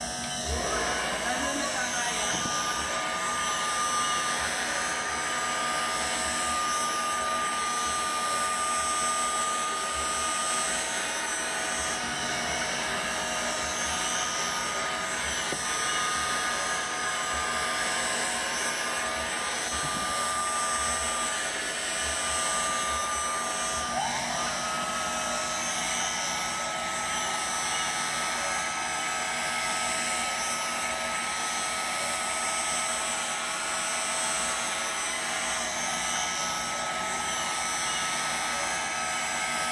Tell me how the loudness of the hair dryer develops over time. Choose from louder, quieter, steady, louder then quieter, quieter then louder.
steady.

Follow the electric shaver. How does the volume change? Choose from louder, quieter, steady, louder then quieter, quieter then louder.
steady.